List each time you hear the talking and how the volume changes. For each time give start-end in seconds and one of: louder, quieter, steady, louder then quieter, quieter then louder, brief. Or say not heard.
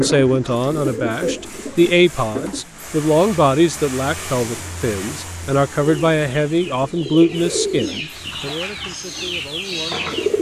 0.0-10.3 quieter.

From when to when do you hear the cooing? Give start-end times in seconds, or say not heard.
0.0-2.6, 5.8-10.3.